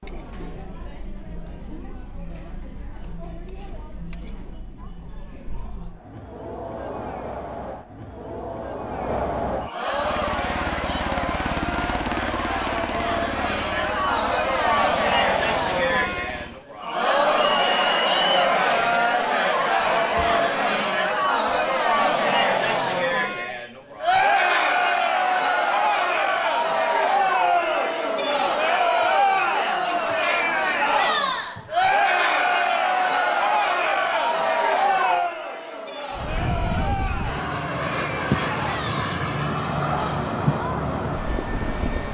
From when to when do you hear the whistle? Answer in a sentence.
You can hear the whistle from 17.4 to 18.5 s.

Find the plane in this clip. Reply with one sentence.
The plane can be heard from 9.8 to 16.6 s and from 36.1 to 42.0 s.